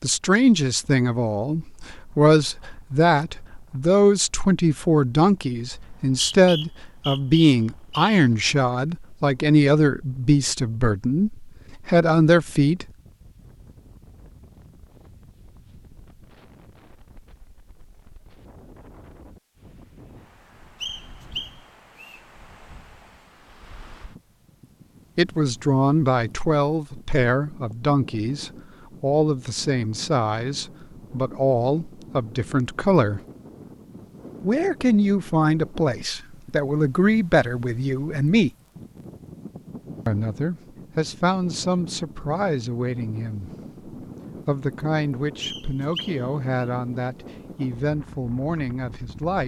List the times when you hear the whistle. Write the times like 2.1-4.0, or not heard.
5.8-8.2, 20.8-22.2, 45.4-46.6.